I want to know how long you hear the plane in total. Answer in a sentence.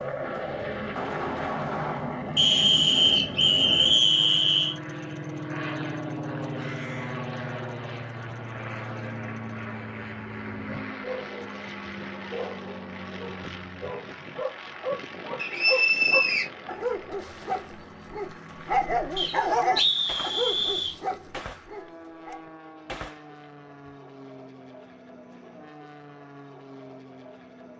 You can hear the plane for 28 seconds altogether.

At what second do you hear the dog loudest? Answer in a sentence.
The volume of the dog peaks at 20 seconds.